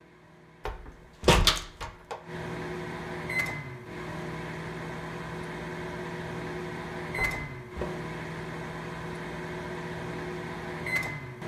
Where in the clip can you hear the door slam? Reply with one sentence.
The door slam can be heard from 0.7 to 2.1 s and from 7.2 to 7.8 s.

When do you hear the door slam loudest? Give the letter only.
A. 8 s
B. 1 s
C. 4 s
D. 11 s
B.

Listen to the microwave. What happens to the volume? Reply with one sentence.
The loudness of the microwave goes up.